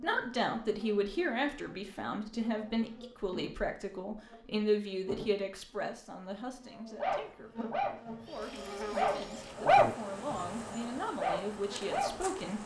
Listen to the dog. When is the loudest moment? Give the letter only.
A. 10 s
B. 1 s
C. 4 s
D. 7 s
A.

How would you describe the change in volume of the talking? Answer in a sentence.
The loudness of the talking goes down, then up.